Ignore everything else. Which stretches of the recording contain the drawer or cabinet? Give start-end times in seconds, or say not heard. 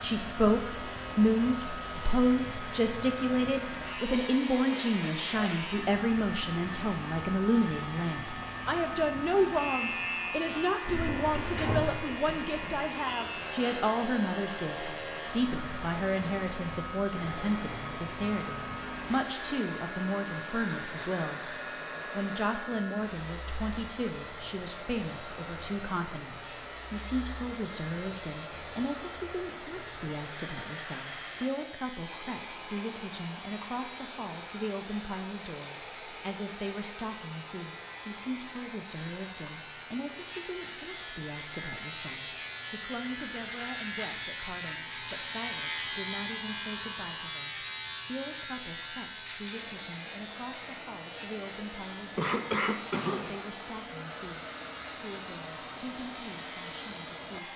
10.8-12.8.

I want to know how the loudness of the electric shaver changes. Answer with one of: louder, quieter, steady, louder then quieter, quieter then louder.
quieter then louder.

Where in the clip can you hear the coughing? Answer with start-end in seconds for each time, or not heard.
52.1-53.5.